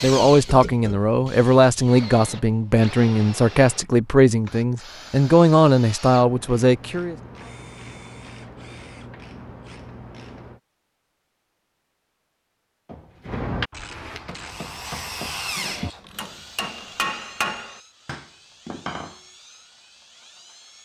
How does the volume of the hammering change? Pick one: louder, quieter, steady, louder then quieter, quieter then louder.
louder then quieter.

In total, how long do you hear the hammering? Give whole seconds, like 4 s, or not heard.
6 s.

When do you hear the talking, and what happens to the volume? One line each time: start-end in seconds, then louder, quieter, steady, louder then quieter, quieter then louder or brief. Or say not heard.
0.0-7.2 steady.